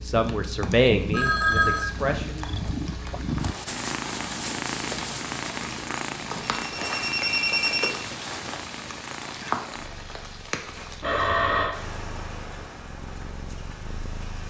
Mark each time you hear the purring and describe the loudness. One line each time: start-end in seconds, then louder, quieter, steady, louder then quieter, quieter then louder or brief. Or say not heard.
0.0-14.4 quieter.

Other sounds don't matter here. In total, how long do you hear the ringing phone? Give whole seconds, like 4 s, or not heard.
3 s.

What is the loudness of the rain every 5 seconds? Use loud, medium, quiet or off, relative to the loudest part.
medium, loud, medium.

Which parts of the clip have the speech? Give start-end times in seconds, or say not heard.
0.1-2.5.